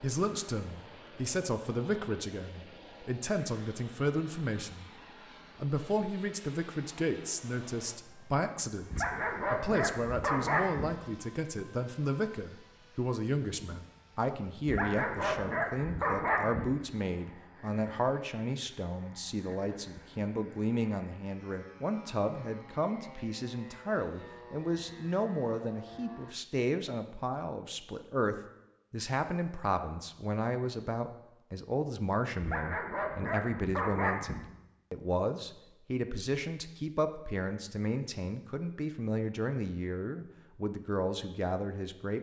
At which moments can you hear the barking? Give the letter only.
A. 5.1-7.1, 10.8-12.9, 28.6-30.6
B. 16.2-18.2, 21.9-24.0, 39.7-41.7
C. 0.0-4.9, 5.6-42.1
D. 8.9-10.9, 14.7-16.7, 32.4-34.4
D.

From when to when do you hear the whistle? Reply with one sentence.
You can't hear the whistle here.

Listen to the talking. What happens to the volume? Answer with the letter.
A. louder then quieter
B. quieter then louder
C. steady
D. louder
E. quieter
C.